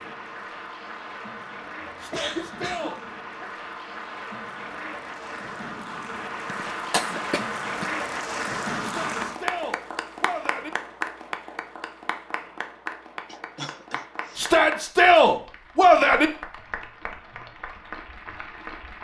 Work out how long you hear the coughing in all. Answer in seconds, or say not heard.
4 s.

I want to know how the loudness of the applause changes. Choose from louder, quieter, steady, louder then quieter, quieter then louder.
louder then quieter.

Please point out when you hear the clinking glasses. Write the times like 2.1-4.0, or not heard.
not heard.